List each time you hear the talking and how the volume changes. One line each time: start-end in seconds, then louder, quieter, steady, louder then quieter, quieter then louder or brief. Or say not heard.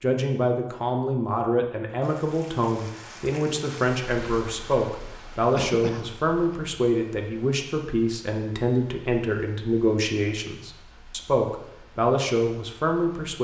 0.0-13.4 steady.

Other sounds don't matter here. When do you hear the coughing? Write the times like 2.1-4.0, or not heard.
5.5-6.5.